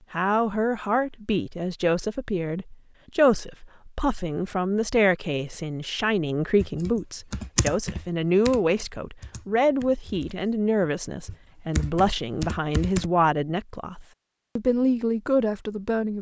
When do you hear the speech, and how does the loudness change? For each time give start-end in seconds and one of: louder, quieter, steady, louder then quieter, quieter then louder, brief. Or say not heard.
0.1-16.1 steady.